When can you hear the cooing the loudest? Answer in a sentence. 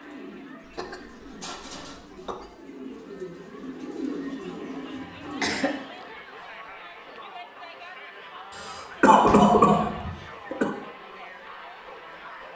The loudest moment of the cooing is at 4 seconds.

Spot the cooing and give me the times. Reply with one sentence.
The cooing can be heard from 0.0 to 6.0 s.